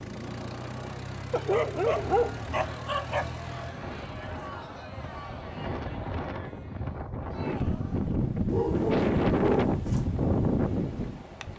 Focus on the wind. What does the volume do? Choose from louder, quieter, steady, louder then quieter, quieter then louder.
louder.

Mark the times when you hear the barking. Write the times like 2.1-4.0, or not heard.
1.3-3.4, 8.5-10.1.